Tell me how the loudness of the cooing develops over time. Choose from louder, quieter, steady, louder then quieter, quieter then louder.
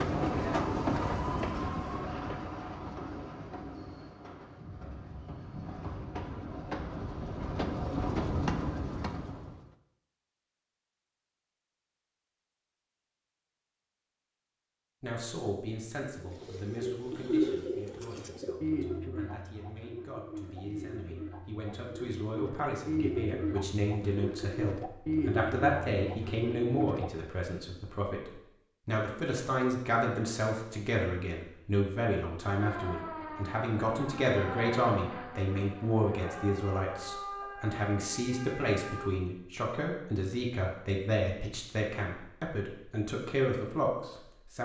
quieter then louder.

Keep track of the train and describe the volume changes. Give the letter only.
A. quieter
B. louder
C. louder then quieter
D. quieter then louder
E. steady
D.